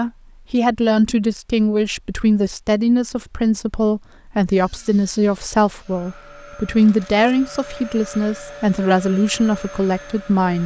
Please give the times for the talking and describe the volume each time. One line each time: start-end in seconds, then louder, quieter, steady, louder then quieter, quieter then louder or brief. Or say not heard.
0.0-10.6 steady.